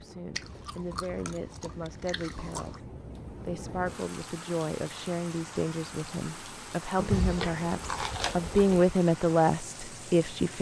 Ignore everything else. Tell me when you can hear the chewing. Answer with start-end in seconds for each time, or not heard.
0.3-2.8, 7.0-8.8.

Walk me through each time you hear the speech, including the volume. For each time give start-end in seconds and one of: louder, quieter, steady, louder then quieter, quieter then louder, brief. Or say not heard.
0.0-10.5 louder.